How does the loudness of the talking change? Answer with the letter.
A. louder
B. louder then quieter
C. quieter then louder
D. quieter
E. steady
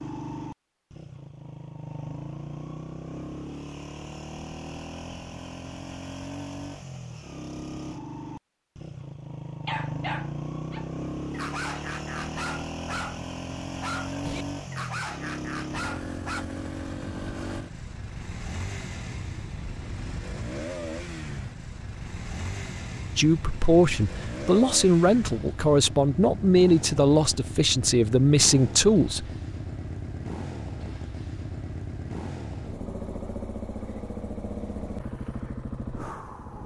E.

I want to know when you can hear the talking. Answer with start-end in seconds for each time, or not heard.
23.1-29.2.